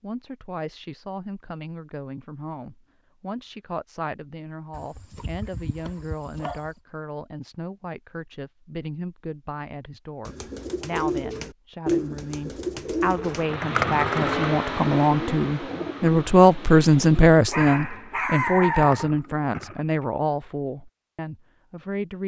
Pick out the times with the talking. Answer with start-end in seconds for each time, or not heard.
0.0-22.2.